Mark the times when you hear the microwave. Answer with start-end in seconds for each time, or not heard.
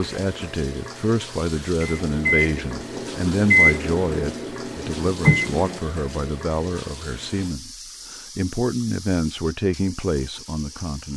1.8-5.8.